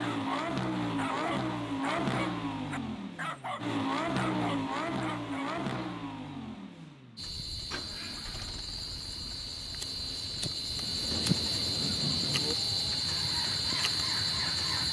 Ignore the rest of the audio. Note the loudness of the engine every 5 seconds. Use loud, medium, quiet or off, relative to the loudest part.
loud, medium, medium.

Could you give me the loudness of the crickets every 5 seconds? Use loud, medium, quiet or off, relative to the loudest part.
off, medium, loud.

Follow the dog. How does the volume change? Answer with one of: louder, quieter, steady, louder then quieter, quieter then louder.
quieter then louder.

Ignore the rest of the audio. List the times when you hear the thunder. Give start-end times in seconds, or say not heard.
10.8-12.6.